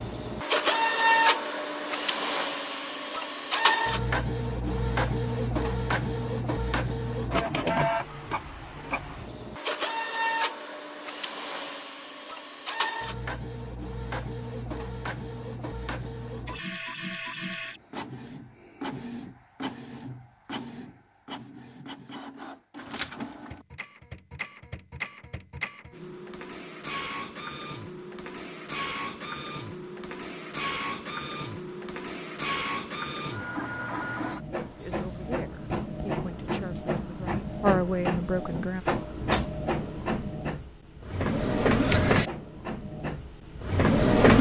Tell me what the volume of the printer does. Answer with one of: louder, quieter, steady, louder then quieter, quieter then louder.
quieter then louder.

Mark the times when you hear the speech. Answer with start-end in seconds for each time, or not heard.
34.8-38.9.